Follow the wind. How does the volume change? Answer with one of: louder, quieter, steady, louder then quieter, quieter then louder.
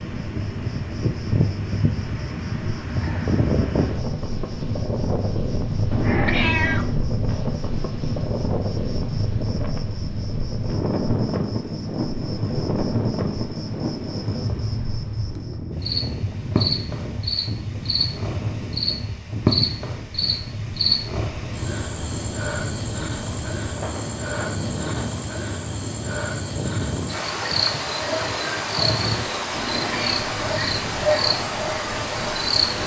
quieter.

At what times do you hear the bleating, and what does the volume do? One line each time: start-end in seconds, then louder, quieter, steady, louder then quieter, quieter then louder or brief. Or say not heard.
not heard.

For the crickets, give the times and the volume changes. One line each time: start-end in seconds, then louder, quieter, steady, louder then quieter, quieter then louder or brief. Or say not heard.
0.1-32.8 louder.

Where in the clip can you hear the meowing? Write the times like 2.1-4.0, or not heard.
5.9-7.0, 29.6-30.2.